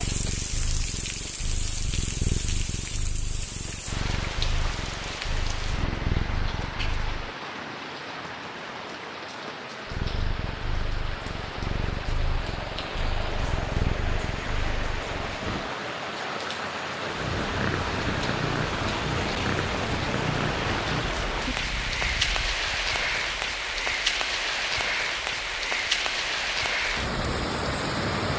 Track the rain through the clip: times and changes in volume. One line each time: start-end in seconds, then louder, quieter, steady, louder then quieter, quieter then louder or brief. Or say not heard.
0.0-28.3 louder.